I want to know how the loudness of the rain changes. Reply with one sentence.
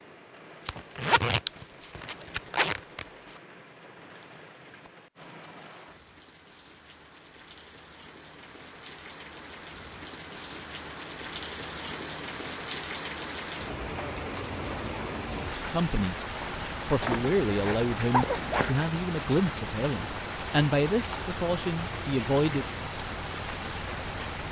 The volume of the rain goes up.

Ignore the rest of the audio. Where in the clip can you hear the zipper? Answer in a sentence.
The zipper can be heard from 0.7 to 3.0 s and from 17.0 to 18.8 s.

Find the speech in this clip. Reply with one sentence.
You can hear the speech from 15.7 to 16.2 s and from 16.9 to 22.6 s.